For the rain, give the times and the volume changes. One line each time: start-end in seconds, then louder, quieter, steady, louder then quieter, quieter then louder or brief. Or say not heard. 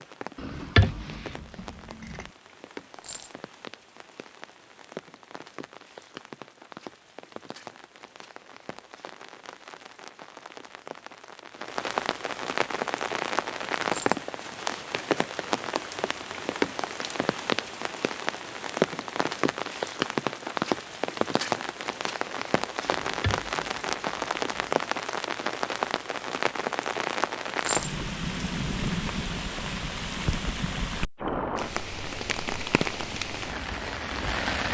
0.0-34.7 louder.